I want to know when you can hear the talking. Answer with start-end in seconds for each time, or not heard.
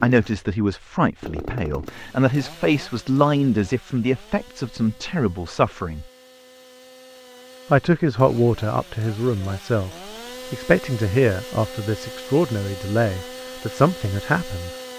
0.0-6.0, 7.7-9.9, 10.5-14.7.